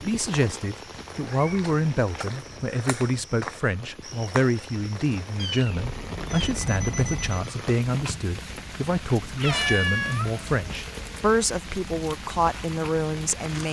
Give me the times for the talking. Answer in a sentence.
You can hear the talking from 0.0 to 13.6 s.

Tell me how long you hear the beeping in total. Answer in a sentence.
The beeping can be heard for 2 seconds in total.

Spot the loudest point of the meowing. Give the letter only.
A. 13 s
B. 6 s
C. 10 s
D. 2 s
C.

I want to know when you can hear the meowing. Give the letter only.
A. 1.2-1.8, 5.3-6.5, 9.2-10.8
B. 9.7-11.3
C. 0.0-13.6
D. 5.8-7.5
A.